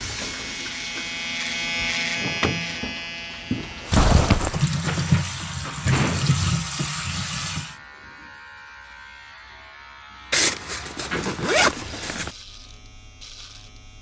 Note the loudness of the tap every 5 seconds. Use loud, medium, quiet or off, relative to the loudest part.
medium, loud, off.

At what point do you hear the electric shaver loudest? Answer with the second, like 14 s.
2 s.